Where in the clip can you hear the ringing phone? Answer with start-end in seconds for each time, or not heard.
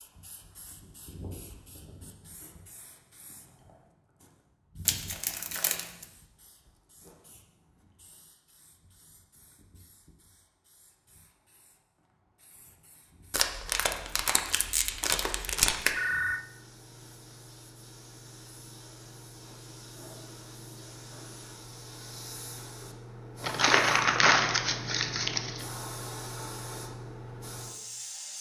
15.4-16.4.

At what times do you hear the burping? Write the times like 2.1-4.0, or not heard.
not heard.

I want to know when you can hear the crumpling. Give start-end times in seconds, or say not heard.
4.8-6.0, 13.3-15.9, 23.4-25.6.